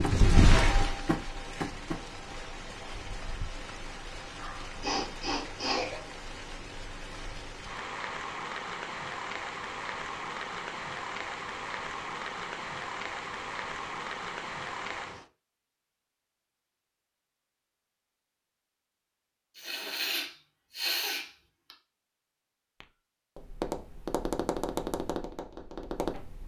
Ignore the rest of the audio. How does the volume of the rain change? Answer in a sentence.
The loudness of the rain goes down, then up.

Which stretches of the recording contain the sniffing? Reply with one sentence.
The sniffing can be heard from 4.3 to 6.0 s and from 19.6 to 21.8 s.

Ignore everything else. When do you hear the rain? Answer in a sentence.
You can hear the rain from 0.0 to 15.2 s.